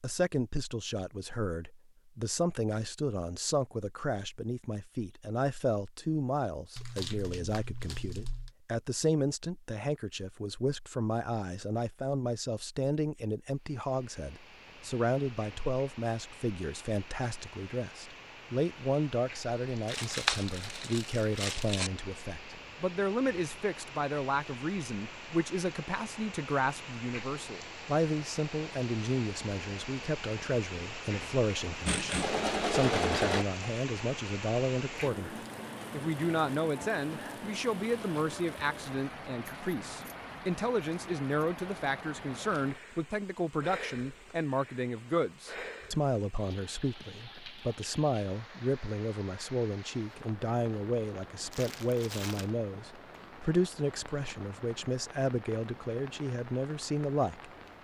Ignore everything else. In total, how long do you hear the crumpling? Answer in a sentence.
The crumpling can be heard for 5 seconds in total.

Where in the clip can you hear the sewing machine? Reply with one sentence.
You can hear the sewing machine from 31.9 to 33.5 s.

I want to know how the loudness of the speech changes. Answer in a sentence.
The volume of the speech stays about the same.